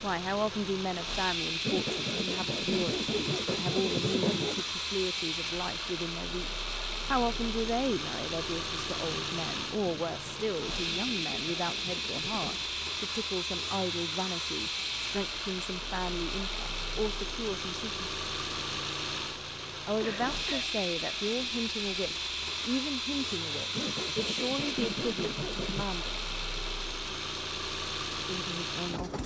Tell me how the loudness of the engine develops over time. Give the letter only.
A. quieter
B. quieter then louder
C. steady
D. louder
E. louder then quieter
C.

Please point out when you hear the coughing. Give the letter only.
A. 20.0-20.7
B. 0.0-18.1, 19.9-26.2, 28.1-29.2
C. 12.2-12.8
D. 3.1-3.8
A.